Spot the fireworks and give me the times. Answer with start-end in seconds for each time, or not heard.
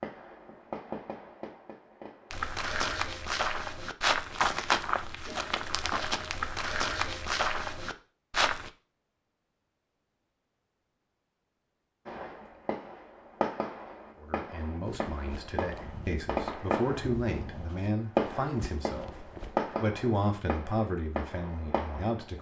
0.0-2.5, 12.1-22.3.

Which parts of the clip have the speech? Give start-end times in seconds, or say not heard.
14.2-22.3.